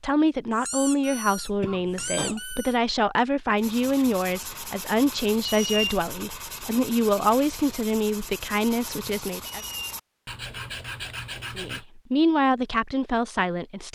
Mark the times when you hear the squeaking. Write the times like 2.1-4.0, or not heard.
0.5-2.8, 5.5-6.0, 9.4-9.9.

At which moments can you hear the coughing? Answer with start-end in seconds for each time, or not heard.
1.6-2.4.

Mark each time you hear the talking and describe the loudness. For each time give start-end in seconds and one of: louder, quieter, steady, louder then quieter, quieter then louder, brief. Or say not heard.
0.0-9.6 steady
11.6-13.8 brief.